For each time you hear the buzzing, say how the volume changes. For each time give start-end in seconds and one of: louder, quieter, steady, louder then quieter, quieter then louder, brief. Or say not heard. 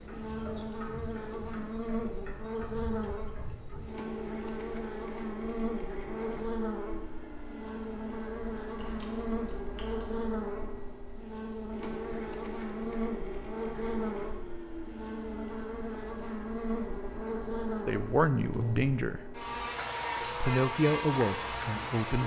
0.0-22.2 steady.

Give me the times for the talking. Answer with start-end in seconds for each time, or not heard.
17.9-19.2, 20.4-22.2.